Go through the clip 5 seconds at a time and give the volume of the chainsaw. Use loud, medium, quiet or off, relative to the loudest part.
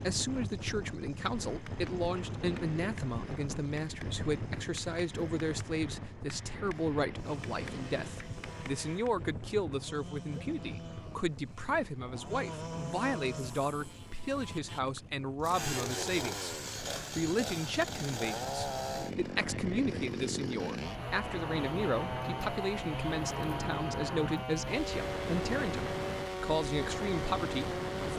quiet, quiet, medium, loud, loud, loud.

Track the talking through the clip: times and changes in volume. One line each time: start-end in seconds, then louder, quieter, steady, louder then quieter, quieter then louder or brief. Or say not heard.
0.0-28.1 steady.